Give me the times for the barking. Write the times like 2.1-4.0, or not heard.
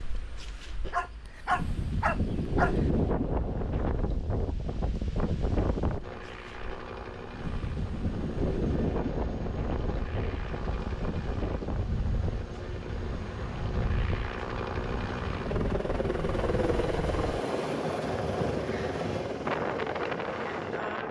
0.9-2.9.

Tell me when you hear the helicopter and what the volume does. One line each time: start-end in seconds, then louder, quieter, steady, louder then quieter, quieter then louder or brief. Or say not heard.
6.0-20.8 louder.